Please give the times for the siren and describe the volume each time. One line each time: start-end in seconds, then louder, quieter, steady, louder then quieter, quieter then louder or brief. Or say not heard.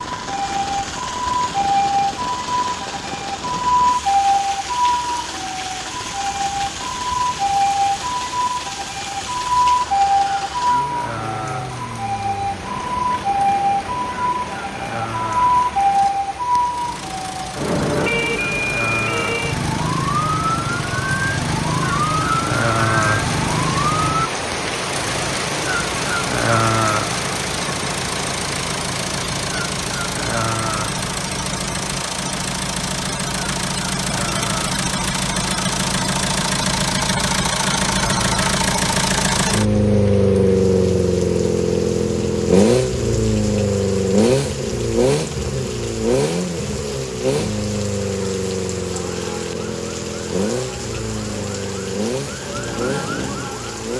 0.0-24.3 steady
48.9-53.9 louder.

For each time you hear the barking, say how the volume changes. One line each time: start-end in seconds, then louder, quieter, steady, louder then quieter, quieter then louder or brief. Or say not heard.
not heard.